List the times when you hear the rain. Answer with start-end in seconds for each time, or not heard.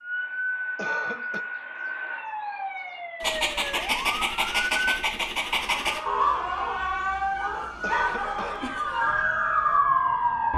not heard.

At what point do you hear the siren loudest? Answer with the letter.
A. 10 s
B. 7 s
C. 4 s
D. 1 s
A.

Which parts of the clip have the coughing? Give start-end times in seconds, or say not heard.
0.8-1.4, 7.8-8.7.